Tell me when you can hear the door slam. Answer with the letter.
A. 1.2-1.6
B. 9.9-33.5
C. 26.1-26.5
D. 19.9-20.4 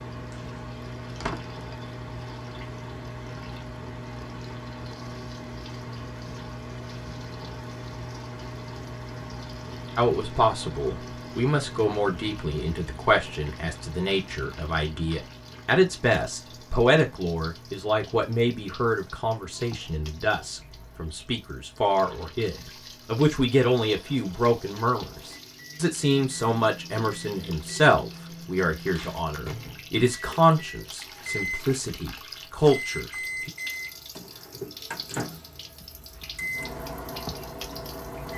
A.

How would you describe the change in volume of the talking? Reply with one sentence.
The loudness of the talking stays about the same.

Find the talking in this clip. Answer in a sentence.
The talking can be heard from 9.9 to 33.5 s.